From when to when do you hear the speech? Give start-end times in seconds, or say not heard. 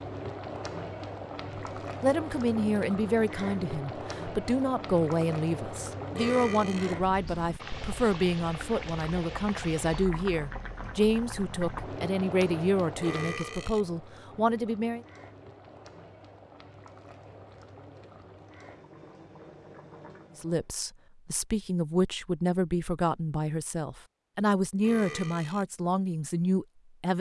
2.0-15.0, 20.4-27.1.